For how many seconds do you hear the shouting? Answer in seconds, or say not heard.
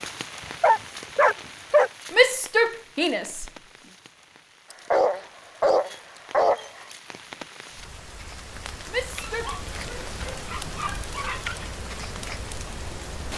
2 s.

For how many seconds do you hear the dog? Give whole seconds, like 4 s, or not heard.
6 s.